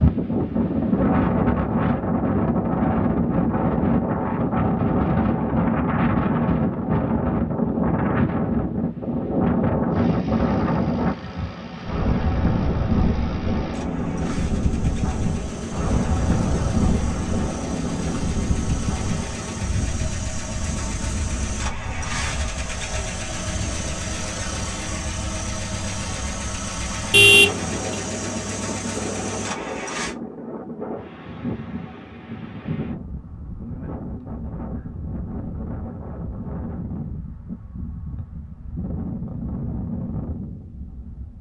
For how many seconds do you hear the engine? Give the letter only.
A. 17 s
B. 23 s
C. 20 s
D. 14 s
C.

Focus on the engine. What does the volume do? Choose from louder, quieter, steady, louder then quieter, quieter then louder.
louder.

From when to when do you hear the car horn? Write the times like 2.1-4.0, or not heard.
27.1-27.8.